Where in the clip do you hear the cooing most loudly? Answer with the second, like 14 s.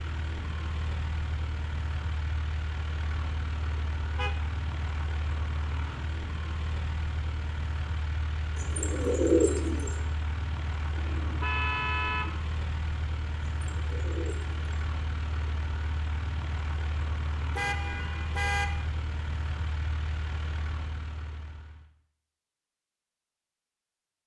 9 s.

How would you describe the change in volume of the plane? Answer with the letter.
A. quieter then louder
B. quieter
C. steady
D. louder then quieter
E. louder
C.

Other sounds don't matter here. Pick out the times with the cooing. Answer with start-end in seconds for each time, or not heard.
8.6-10.0, 13.6-14.8.